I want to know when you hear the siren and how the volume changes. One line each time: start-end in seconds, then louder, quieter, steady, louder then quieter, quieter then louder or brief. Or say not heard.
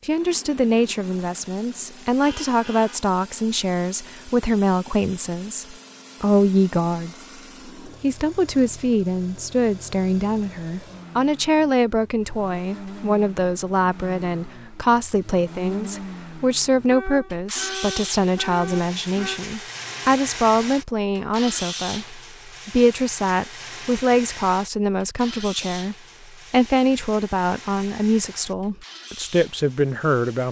not heard.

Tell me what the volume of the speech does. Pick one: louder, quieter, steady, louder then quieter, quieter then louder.
steady.